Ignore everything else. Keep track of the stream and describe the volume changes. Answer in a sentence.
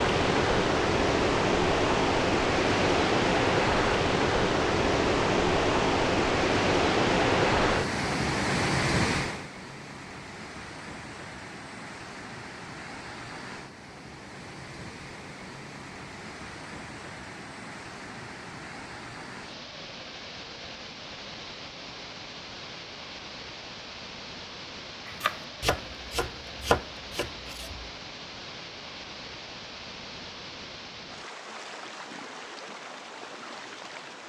The volume of the stream goes down.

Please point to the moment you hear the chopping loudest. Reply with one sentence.
The volume of the chopping peaks at 27 seconds.